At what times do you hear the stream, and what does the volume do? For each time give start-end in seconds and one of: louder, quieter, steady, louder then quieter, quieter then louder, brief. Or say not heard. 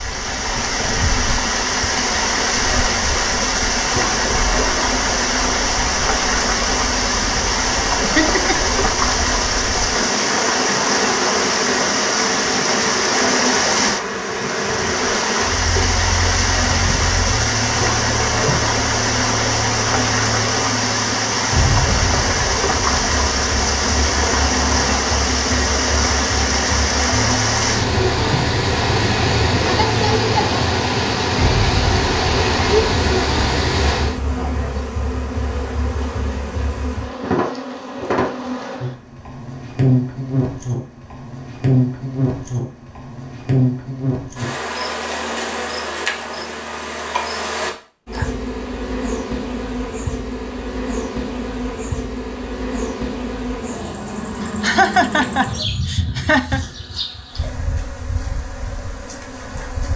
0.0-34.2 steady.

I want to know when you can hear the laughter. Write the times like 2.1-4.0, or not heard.
8.2-8.7, 54.6-56.6.